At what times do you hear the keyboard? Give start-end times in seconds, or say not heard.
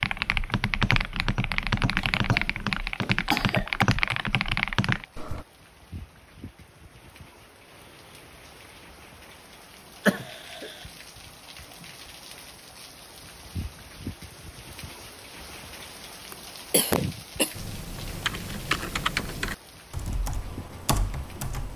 0.0-5.5, 17.6-21.7.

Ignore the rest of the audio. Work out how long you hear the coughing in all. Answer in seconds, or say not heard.
4 s.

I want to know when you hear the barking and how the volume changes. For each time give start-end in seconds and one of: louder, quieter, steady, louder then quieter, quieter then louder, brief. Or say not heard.
not heard.